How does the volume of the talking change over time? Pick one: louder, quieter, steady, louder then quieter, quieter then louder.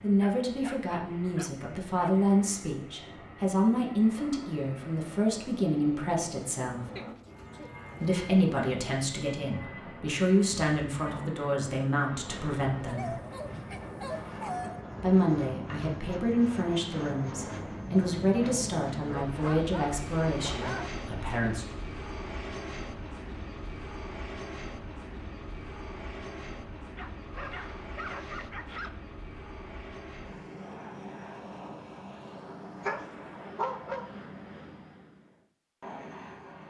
steady.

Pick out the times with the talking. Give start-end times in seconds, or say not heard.
0.0-6.8, 8.0-13.2, 15.0-21.6.